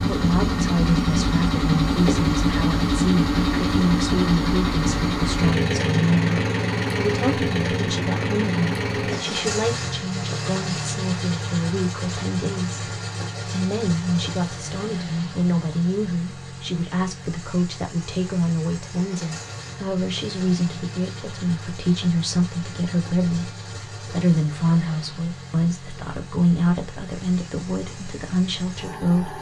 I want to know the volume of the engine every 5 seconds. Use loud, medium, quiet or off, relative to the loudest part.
loud, loud, medium, quiet, quiet, quiet.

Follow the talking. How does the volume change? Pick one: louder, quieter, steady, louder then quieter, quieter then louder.
steady.